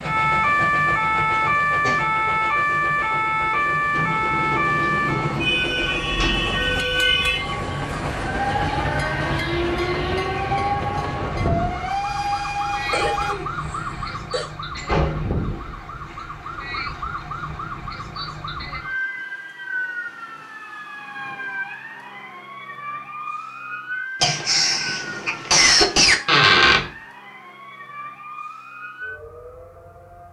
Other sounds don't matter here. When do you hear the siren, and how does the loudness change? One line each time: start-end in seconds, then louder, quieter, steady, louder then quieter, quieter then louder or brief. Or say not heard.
0.0-30.2 quieter.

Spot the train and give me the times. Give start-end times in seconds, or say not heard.
0.0-13.3.